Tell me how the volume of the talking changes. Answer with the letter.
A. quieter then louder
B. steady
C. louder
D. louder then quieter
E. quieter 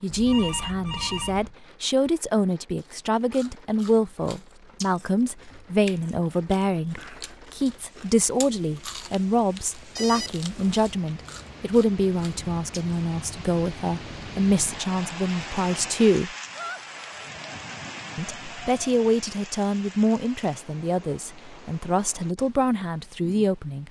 B.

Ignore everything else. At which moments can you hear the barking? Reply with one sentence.
The barking can't be heard in this clip.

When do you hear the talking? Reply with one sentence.
You can hear the talking from 0.0 to 16.3 s and from 18.1 to 23.8 s.